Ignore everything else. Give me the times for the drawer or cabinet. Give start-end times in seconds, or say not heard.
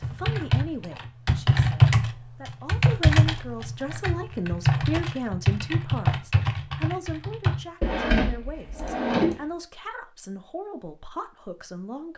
7.8-9.4.